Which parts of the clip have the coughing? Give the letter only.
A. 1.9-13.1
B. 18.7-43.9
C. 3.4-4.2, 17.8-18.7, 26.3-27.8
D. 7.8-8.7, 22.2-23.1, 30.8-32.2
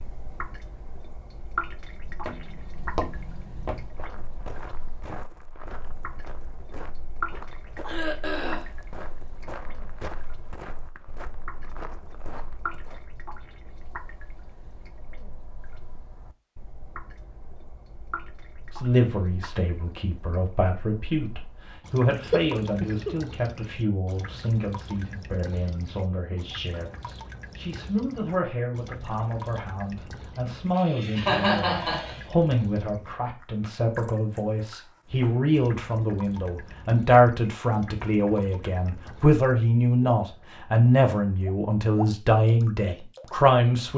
D.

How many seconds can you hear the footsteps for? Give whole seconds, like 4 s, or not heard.
11 s.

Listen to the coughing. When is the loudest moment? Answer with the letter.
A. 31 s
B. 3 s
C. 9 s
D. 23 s
A.